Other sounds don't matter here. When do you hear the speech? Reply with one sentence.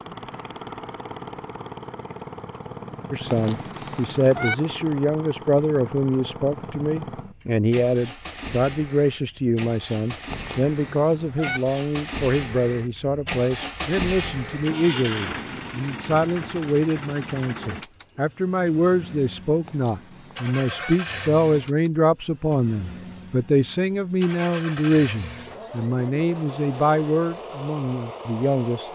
You can hear the speech from 3.1 to 28.9 s.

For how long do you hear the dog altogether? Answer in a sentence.
You can't hear the dog here.